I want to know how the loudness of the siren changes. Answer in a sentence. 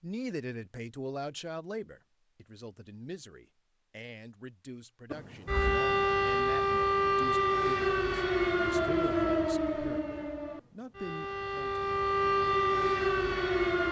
The loudness of the siren goes down, then up.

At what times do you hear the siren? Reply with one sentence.
The siren can be heard from 5.1 to 13.8 s.